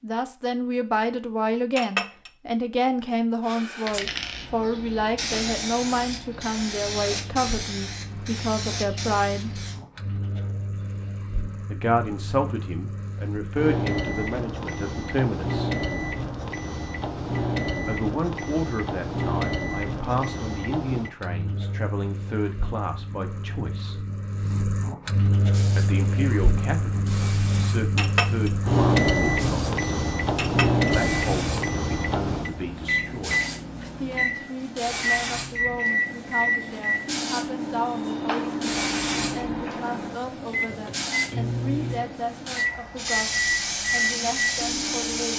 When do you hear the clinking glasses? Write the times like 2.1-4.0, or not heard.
1.8-2.3, 27.9-28.5, 30.4-30.9.